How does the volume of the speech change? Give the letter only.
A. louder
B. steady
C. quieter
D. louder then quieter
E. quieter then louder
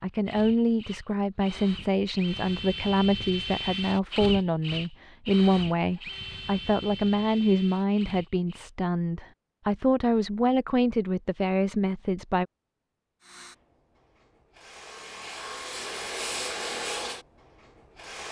B.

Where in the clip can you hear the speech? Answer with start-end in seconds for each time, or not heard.
0.0-12.4.